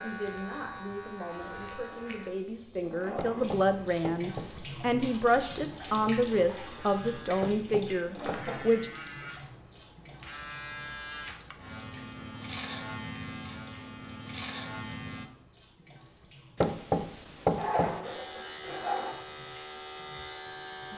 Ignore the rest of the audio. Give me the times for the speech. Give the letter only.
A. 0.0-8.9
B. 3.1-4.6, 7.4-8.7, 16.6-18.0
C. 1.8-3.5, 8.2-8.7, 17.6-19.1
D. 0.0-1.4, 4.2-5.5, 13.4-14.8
A.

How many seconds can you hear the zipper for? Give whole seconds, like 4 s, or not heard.
4 s.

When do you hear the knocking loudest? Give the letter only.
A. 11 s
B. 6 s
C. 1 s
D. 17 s
D.